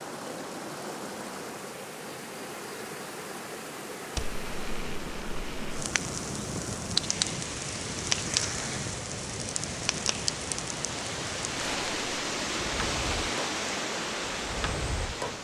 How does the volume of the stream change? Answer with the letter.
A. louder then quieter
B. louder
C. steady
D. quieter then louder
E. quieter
B.